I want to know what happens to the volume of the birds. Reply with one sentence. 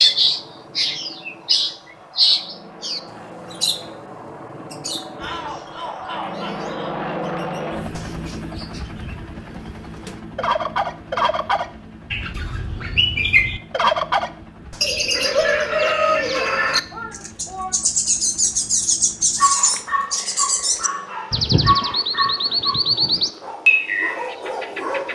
The loudness of the birds goes down, then up.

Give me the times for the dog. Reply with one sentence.
You can hear the dog from 19.4 to 25.1 s.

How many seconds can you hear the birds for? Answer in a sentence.
You can hear the birds for 25 seconds altogether.